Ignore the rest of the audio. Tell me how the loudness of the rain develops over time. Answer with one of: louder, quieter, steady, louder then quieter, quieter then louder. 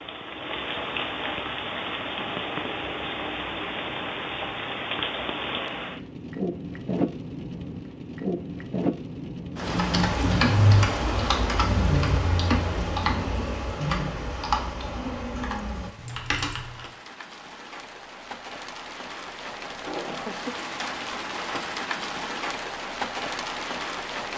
quieter then louder.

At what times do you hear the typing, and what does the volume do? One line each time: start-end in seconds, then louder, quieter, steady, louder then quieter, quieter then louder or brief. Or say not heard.
9.6-16.9 quieter.